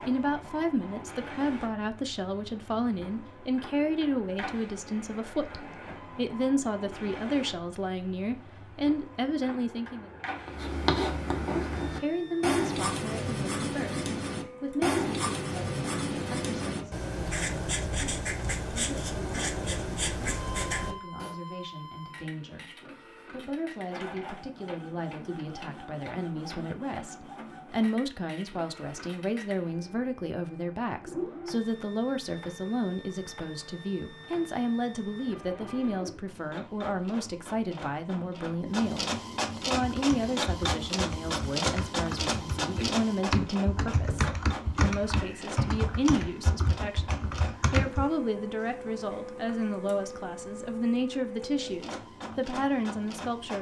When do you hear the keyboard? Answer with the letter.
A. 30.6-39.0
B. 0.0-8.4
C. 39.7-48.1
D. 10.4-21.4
C.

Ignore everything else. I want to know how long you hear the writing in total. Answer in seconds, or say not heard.
11 s.